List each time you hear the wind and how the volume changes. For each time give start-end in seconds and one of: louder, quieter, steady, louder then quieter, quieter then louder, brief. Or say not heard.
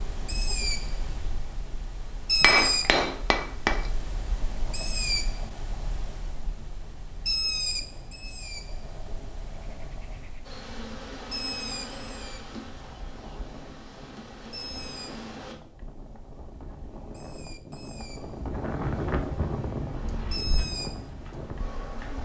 6.7-22.2 louder.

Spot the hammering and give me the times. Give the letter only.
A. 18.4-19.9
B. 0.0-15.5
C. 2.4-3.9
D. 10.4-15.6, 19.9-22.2
C.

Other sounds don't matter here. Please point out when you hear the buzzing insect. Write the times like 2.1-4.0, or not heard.
10.4-15.6, 19.9-22.2.